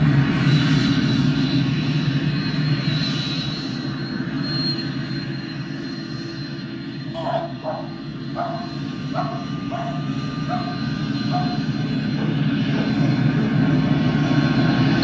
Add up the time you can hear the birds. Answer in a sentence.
You can't hear the birds here.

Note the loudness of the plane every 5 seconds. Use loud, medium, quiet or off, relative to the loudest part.
loud, medium, loud.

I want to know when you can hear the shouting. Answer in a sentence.
You can hear the shouting from 7.1 to 7.5 s.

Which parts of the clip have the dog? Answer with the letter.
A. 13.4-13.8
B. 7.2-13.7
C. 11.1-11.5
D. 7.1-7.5
B.